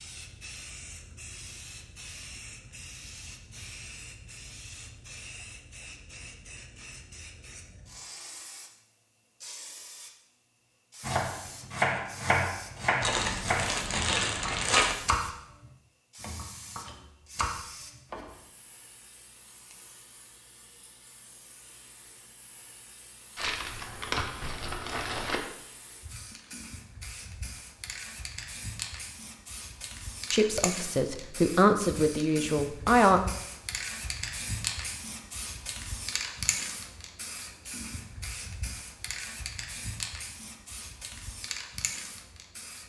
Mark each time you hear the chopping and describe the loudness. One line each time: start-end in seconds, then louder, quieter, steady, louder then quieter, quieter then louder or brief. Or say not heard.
11.0-18.4 quieter then louder.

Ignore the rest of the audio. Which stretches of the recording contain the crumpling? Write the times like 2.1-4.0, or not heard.
13.0-14.9, 23.4-25.4.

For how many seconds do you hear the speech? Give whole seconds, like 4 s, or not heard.
3 s.